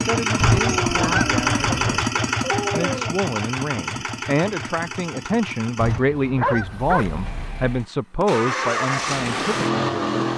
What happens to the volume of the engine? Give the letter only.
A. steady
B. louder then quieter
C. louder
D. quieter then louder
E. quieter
D.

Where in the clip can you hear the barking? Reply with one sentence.
The barking can be heard from 0.5 to 3.1 s and from 6.4 to 7.0 s.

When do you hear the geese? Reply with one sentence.
You can hear the geese from 0.4 to 1.9 s and from 5.8 to 7.5 s.